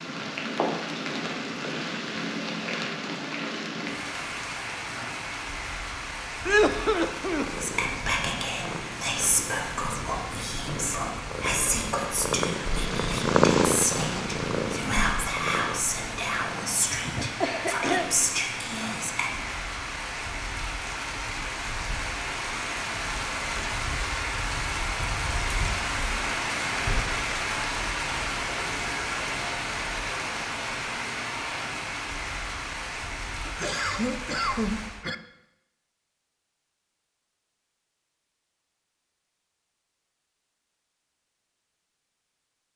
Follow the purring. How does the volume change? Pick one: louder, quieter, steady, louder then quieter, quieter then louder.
louder then quieter.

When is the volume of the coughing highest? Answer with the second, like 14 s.
7 s.